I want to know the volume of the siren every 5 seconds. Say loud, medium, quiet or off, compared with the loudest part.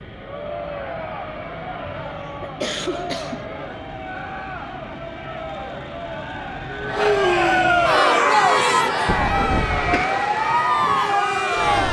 off, loud, loud.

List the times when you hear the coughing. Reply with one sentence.
The coughing can be heard from 1.9 to 3.5 s and from 9.1 to 10.1 s.